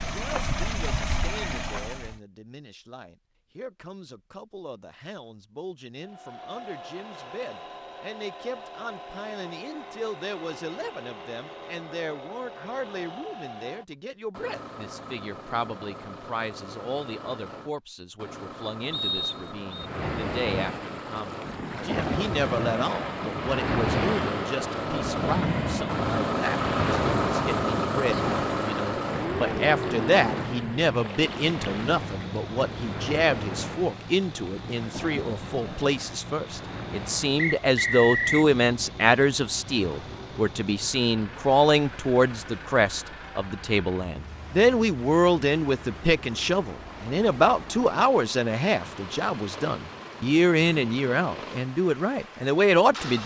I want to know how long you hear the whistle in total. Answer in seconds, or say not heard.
2 s.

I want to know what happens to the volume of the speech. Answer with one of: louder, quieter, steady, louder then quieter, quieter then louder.
louder.